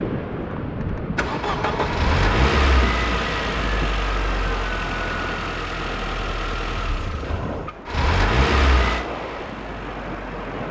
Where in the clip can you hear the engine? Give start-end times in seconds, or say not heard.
0.8-10.6.